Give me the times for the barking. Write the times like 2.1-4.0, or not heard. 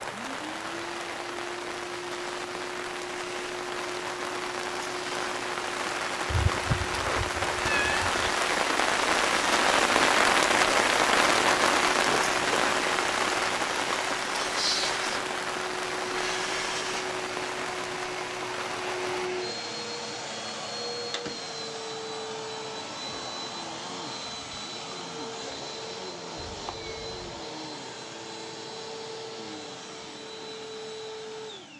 not heard.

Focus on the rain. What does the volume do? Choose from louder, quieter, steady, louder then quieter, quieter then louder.
louder then quieter.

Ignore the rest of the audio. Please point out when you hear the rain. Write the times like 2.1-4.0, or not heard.
0.0-19.3.